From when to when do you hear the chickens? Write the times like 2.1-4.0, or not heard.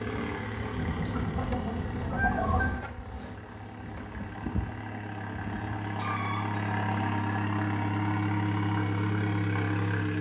0.8-2.8, 5.7-7.2.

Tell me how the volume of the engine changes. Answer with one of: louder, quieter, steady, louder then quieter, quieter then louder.
quieter then louder.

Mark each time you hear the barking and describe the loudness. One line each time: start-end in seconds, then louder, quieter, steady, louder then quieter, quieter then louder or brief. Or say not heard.
not heard.